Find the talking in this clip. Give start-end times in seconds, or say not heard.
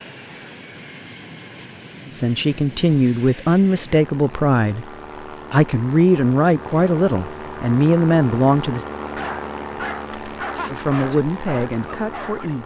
2.1-4.9, 5.5-8.8, 10.7-12.6.